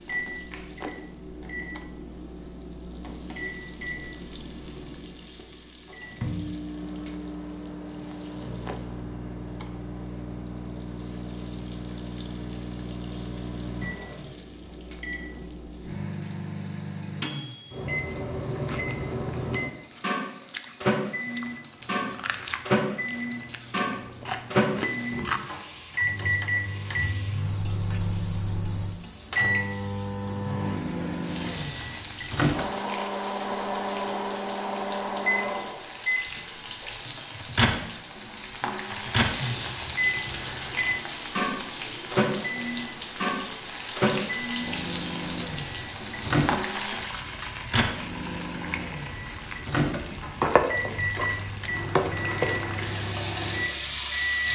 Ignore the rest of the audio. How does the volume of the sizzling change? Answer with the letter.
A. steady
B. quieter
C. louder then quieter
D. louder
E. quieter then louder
D.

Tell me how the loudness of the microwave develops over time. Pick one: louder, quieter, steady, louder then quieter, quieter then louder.
louder.